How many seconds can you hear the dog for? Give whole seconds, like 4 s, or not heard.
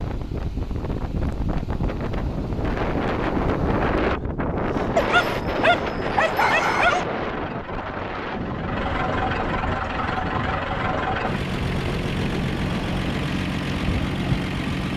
2 s.